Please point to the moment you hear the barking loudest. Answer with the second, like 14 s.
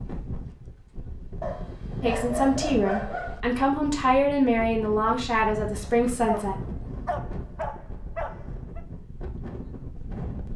3 s.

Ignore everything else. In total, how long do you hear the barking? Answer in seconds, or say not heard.
5 s.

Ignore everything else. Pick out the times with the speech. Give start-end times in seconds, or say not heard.
2.0-6.5.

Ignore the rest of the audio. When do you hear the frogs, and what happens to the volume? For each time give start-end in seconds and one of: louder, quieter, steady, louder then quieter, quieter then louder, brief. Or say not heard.
not heard.